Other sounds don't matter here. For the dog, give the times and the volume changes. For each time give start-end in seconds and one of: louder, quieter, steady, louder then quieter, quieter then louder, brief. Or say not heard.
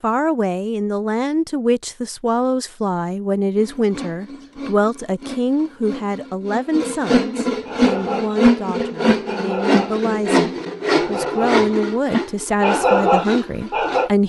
7.7-14.1 louder.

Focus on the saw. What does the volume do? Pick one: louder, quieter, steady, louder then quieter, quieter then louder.
louder then quieter.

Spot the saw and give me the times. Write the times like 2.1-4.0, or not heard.
3.5-14.2.